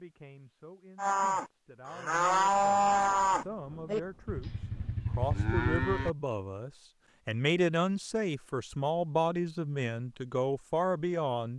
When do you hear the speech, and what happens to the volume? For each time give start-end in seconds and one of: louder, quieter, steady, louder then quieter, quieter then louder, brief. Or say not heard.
0.0-11.5 louder.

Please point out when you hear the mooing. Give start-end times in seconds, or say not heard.
0.9-6.1.